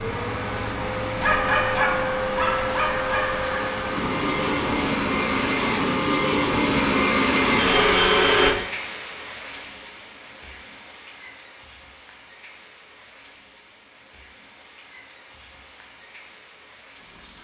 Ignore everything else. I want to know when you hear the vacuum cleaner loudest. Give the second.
8 s.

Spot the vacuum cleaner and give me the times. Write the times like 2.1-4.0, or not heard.
0.0-8.6.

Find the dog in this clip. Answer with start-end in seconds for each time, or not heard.
1.1-3.6.